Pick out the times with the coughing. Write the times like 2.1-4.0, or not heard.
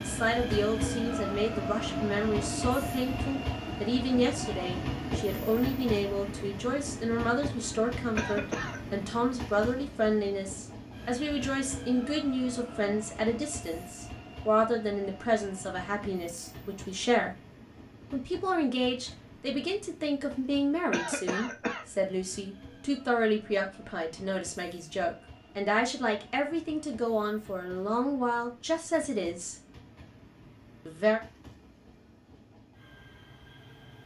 8.2-8.8, 20.9-21.9.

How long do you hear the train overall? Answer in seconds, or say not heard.
34 s.